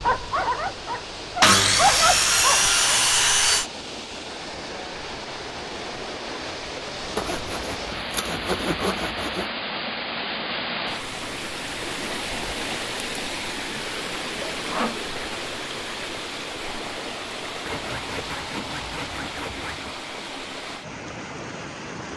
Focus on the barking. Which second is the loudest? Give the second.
2 s.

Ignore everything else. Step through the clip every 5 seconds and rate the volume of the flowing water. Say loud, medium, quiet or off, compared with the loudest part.
medium, loud, loud, loud, medium.